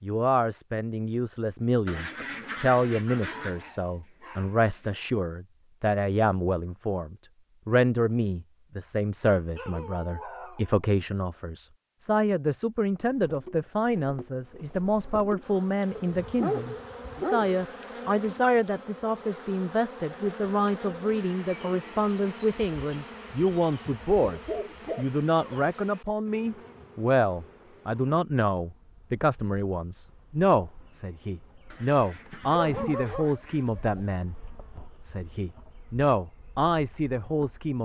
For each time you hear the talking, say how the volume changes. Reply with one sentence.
The talking can be heard from 0.0 to 37.7 s, at a steady volume.